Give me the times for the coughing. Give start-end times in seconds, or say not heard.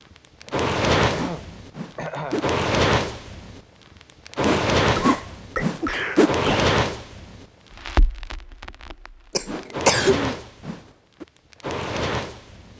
0.5-2.5, 4.8-6.8, 9.3-10.3.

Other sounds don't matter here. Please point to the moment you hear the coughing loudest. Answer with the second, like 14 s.
10 s.